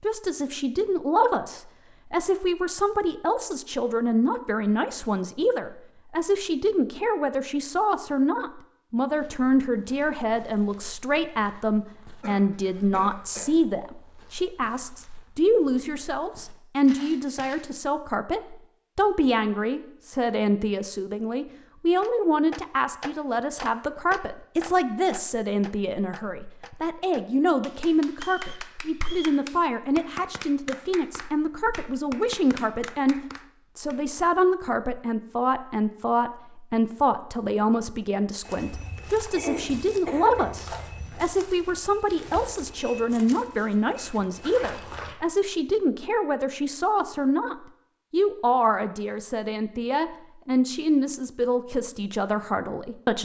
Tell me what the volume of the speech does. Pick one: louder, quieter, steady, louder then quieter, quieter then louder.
steady.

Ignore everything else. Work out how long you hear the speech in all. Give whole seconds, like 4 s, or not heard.
53 s.